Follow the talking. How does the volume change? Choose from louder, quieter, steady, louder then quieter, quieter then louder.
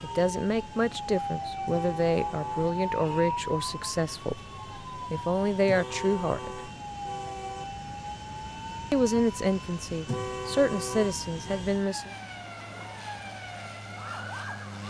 steady.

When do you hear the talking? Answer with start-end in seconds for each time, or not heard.
0.0-6.6, 8.9-12.1.